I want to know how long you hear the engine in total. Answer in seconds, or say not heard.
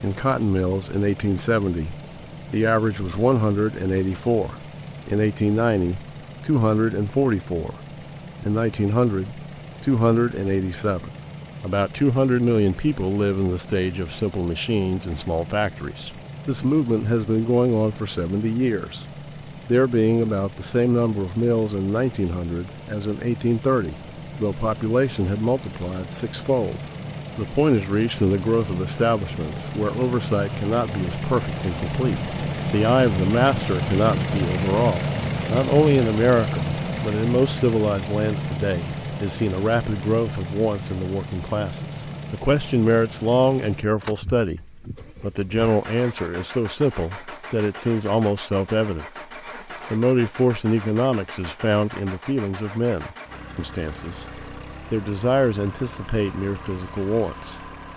58 s.